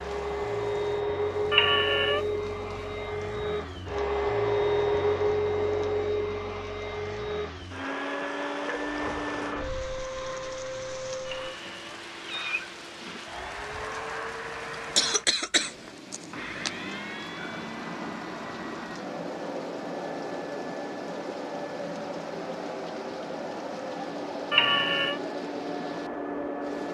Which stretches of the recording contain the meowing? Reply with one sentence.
The meowing can be heard from 1.5 to 2.2 s, from 11.2 to 13.2 s and from 24.5 to 25.2 s.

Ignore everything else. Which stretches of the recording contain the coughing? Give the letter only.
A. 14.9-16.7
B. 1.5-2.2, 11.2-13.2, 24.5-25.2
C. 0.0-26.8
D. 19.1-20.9
A.